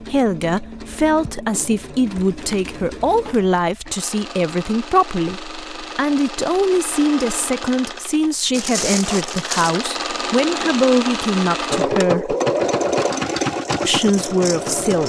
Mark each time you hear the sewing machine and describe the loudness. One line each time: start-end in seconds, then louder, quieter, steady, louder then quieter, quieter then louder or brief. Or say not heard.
0.0-15.0 louder.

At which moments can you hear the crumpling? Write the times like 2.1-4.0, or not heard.
2.0-3.6, 8.5-9.8.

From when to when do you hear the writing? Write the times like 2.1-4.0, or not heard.
not heard.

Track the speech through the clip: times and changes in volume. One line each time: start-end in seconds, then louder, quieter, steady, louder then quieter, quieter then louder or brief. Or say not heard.
0.0-12.3 steady
13.8-15.0 brief.